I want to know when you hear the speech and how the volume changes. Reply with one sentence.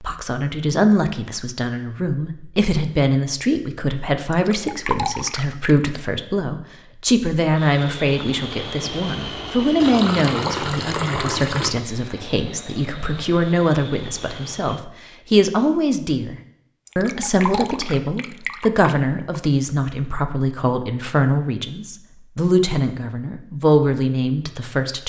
The speech can be heard from 0.0 to 16.4 s, at a steady volume; and from 16.9 to 25.0 s, at a steady volume.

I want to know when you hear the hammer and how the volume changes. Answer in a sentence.
The hammer can't be heard in this clip.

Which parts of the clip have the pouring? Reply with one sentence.
You can hear the pouring from 4.3 to 5.8 s, from 9.8 to 11.8 s and from 16.9 to 19.4 s.